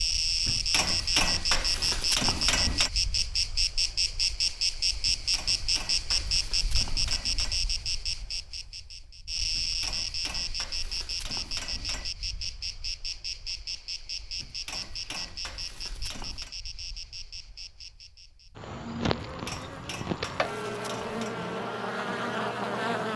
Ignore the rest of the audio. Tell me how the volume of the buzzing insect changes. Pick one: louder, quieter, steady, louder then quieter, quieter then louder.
quieter then louder.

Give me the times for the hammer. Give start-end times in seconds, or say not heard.
0.5-2.9, 5.0-7.6, 9.6-12.1, 14.4-16.6, 19.2-21.4.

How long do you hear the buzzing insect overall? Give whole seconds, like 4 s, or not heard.
23 s.